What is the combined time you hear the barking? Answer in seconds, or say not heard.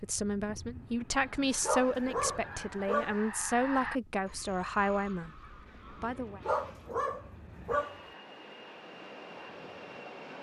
3 s.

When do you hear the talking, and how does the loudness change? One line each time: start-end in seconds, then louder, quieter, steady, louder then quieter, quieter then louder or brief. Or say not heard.
0.0-6.4 steady.